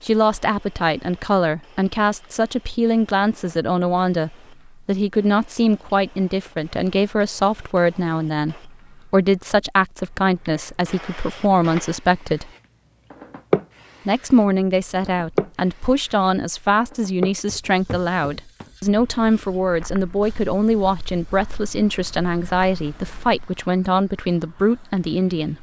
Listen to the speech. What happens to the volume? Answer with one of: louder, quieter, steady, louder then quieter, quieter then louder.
steady.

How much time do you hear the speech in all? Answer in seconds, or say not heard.
24 s.